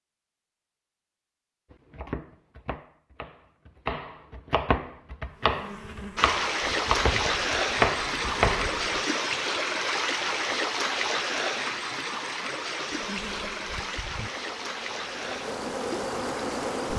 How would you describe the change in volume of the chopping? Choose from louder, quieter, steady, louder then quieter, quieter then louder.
louder.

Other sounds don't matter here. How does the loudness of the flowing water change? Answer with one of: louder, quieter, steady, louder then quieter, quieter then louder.
quieter.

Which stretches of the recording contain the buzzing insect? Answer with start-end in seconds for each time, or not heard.
5.3-9.1, 12.9-16.9.